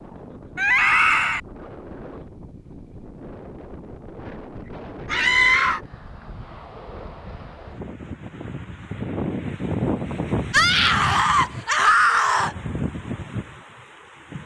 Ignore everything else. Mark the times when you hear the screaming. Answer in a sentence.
The screaming can be heard from 0.6 to 1.4 s, from 5.0 to 5.8 s and from 10.5 to 12.6 s.